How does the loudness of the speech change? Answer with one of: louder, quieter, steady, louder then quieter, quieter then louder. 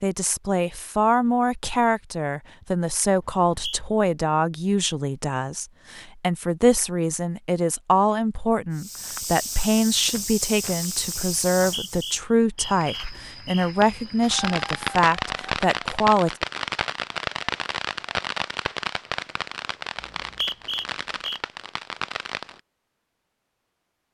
steady.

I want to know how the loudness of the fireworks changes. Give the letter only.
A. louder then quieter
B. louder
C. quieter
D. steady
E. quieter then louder
C.